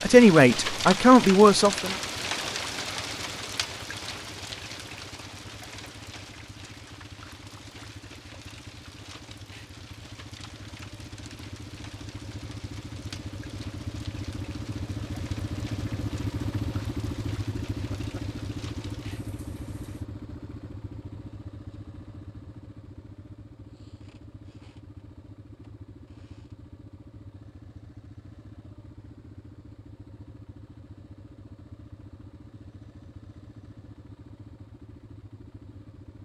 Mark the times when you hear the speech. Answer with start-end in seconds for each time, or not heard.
0.0-1.9.